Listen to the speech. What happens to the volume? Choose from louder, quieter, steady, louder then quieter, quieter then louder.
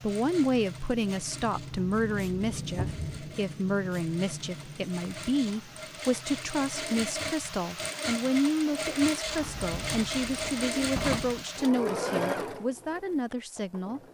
steady.